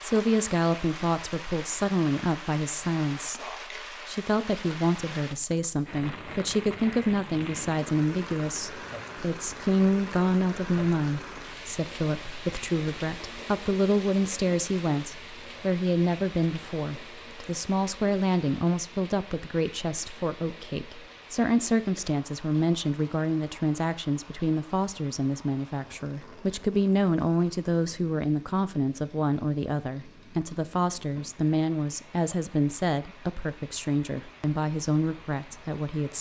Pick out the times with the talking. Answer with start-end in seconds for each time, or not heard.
0.0-36.1.